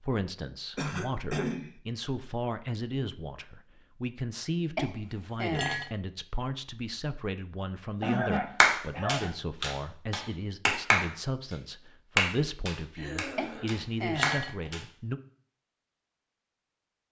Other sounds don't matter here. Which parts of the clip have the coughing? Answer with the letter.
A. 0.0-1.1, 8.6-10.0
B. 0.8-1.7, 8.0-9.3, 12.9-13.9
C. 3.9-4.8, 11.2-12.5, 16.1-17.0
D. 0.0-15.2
B.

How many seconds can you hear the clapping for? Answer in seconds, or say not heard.
5 s.